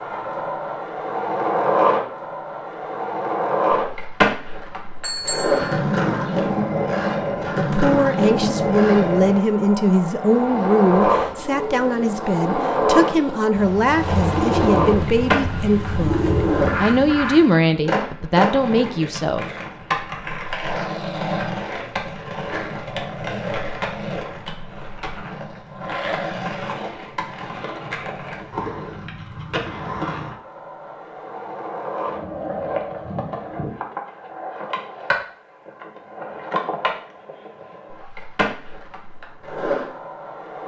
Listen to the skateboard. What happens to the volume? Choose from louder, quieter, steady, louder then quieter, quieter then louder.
quieter.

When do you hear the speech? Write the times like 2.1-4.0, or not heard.
7.5-19.5.